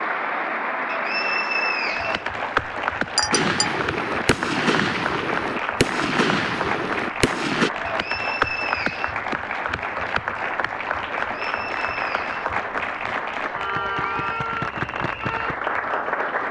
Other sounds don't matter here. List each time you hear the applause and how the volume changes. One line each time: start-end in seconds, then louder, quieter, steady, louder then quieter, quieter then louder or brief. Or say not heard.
0.0-16.4 steady.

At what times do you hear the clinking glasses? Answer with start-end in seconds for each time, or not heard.
3.1-3.8.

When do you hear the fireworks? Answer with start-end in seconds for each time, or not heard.
3.3-7.7.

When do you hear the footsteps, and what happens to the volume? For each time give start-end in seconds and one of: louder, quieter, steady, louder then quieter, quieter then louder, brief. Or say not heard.
not heard.